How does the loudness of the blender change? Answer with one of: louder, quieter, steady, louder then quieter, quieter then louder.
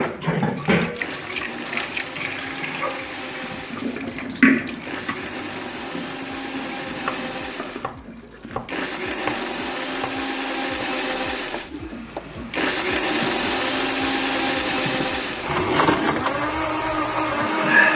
louder.